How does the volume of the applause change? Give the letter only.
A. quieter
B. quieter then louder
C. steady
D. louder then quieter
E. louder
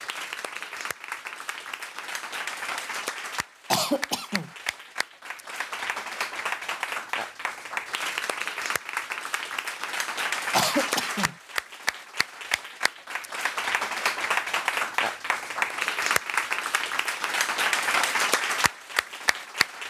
E.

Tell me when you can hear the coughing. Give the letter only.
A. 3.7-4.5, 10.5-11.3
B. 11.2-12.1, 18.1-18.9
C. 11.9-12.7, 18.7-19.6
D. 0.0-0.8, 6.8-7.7
A.